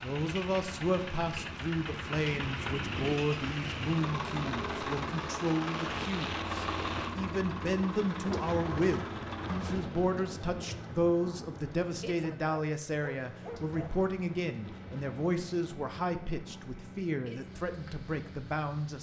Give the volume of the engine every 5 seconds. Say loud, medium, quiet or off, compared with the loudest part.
loud, loud, medium, medium.